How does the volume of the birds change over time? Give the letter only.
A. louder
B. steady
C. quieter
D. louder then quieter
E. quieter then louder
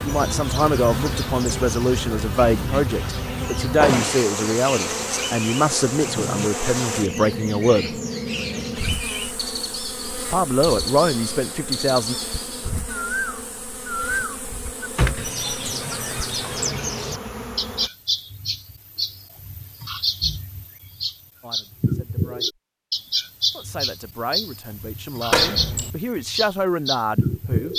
A.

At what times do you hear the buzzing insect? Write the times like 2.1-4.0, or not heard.
0.0-17.9.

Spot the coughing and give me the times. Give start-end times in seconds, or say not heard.
not heard.